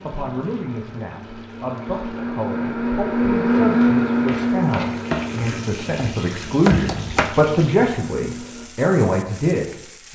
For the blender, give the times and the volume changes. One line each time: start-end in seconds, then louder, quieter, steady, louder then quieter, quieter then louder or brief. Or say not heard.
0.0-8.7 louder then quieter.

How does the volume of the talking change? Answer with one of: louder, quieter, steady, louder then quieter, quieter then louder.
louder.